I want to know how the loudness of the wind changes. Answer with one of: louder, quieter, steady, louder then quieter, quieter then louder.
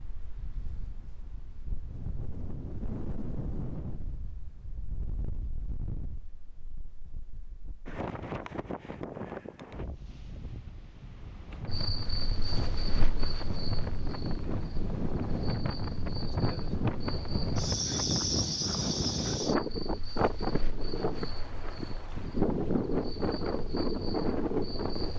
louder.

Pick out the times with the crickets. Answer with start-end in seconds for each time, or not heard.
11.7-25.1.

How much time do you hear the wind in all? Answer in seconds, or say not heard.
25 s.